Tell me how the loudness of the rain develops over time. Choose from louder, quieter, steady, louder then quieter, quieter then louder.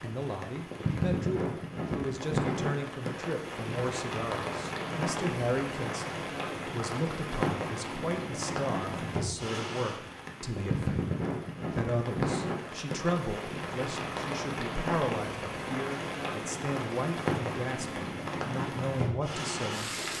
steady.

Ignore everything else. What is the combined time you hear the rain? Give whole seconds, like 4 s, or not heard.
20 s.